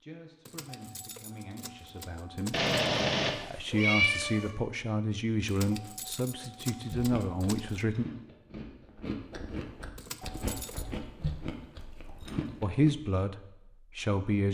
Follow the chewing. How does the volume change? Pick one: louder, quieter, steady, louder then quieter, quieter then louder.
louder.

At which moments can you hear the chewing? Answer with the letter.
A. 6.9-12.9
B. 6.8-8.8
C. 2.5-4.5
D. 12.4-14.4
A.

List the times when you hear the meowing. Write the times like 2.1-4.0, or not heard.
2.5-4.5.